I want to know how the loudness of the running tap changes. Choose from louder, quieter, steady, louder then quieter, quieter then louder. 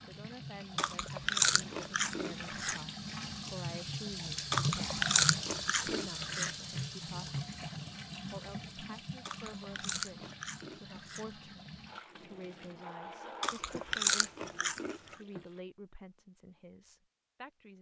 louder then quieter.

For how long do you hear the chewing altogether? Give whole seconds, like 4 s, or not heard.
8 s.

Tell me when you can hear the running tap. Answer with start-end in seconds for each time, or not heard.
0.0-15.6.